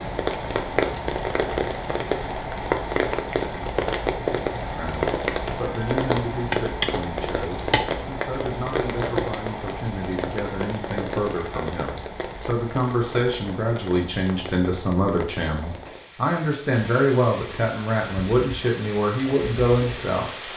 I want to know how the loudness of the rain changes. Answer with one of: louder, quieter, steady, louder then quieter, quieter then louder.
quieter.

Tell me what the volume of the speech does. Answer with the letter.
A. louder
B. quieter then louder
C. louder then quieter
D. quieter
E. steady
A.